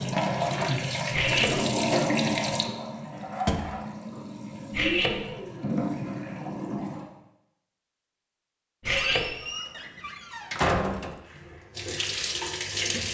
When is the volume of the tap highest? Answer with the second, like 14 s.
2 s.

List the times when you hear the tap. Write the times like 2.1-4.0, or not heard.
0.0-7.0, 11.2-13.0.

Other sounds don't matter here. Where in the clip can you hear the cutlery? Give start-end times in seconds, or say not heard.
1.1-1.6, 4.7-5.2, 8.8-9.2.